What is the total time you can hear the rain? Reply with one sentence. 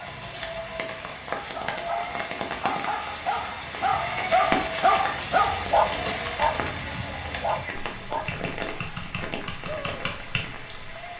You can hear the rain for 11 seconds altogether.